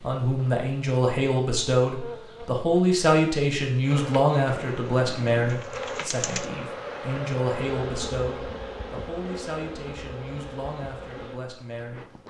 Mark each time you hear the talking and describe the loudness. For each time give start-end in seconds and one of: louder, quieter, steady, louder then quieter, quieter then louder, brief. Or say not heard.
0.0-12.1 quieter.